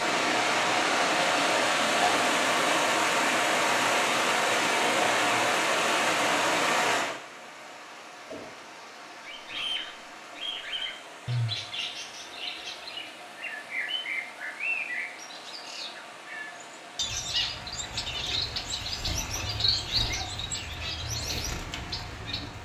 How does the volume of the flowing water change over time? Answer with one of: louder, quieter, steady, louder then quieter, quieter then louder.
quieter.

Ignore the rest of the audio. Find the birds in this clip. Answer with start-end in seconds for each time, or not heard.
9.2-22.6.